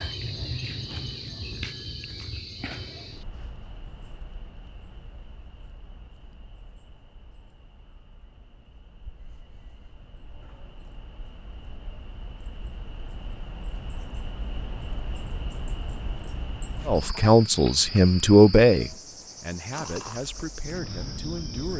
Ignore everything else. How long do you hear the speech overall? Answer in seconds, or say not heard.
5 s.